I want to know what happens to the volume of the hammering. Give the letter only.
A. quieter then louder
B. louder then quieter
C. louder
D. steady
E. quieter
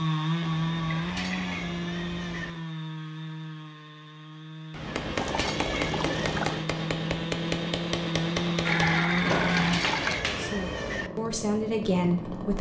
D.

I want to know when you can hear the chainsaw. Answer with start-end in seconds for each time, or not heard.
0.0-12.5.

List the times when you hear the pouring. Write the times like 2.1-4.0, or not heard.
0.8-1.6, 5.2-6.6, 8.7-10.2.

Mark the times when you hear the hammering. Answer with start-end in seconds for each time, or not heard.
4.7-10.6.